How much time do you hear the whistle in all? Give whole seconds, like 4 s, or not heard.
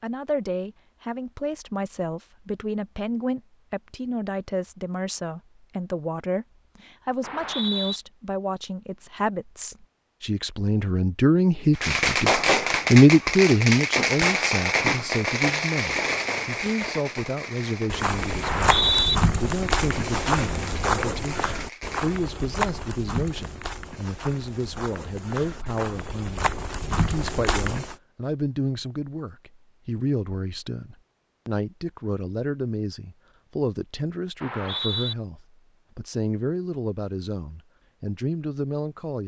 2 s.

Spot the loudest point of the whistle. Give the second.
19 s.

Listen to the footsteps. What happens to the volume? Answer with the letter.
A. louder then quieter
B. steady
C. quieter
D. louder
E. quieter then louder
E.